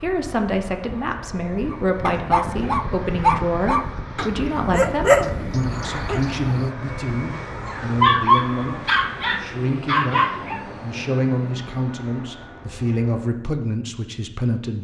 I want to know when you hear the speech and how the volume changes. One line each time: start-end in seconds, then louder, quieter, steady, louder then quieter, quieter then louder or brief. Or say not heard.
0.0-14.7 steady.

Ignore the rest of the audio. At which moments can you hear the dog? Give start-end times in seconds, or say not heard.
1.7-10.7.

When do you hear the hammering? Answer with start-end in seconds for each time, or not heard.
not heard.